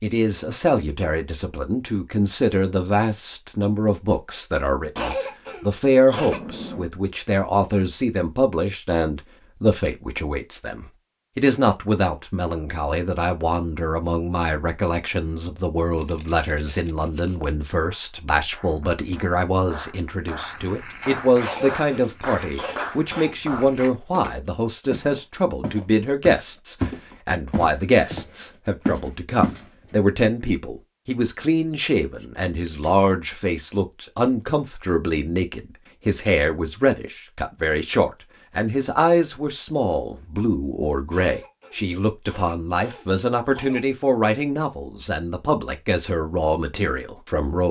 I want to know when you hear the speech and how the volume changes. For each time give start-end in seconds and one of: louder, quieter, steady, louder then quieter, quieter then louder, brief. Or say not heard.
0.0-47.6 steady.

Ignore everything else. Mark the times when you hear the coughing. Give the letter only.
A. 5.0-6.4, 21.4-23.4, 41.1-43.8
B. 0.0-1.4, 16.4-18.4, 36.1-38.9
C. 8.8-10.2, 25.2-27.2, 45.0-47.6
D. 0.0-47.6
A.